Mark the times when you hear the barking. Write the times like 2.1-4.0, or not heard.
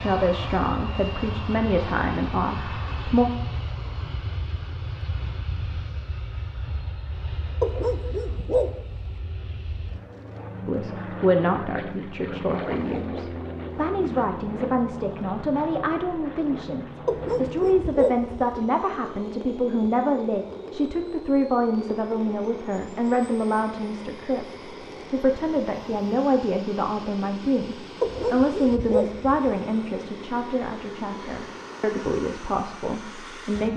7.6-9.1, 17.1-18.6, 28.0-29.5.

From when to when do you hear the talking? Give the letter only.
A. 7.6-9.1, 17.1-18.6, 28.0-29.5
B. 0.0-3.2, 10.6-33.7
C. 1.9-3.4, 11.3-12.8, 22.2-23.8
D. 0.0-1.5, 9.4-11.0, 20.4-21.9
B.